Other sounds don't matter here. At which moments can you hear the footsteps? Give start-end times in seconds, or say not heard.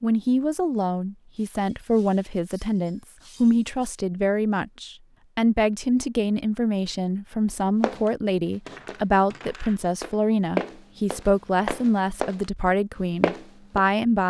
7.8-12.4, 13.2-13.8.